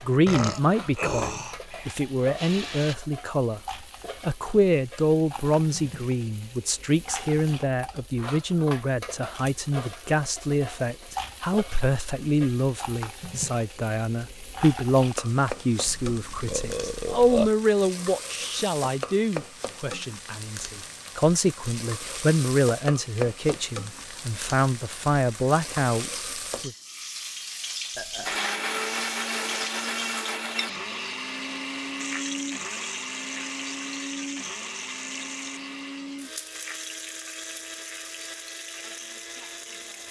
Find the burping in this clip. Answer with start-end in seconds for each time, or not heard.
0.2-2.0, 15.8-17.5, 27.9-28.4.